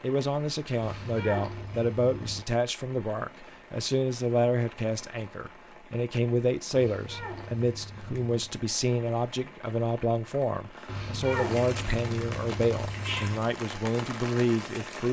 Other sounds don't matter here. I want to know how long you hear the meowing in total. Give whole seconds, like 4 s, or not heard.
6 s.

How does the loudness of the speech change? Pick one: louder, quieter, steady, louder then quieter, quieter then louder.
steady.